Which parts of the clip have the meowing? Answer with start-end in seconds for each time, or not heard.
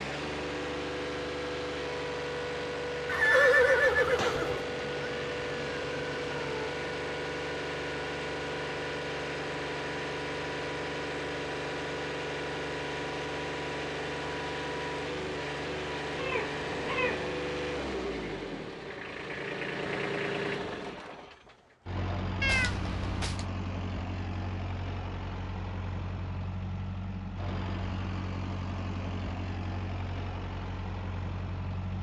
4.2-6.8, 16.1-17.4, 22.4-23.4.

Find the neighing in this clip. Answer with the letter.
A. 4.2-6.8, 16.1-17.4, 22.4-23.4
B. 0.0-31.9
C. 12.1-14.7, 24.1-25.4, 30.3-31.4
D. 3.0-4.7
D.